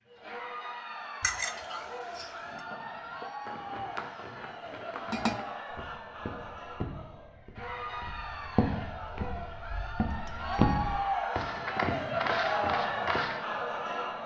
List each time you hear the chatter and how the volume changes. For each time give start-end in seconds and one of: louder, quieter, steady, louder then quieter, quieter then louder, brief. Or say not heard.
0.1-14.2 louder.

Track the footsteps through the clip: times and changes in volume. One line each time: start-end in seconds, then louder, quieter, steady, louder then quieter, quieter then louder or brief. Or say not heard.
2.4-13.4 louder.